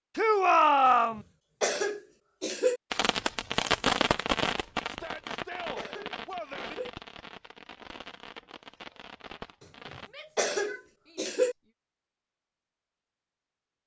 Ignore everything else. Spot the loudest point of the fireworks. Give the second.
4 s.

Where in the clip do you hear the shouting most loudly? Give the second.
1 s.